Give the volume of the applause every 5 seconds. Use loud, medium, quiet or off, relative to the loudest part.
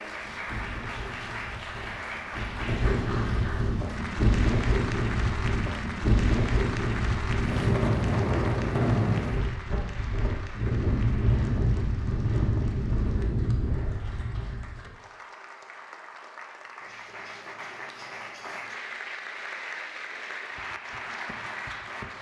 loud, loud, medium, loud, loud.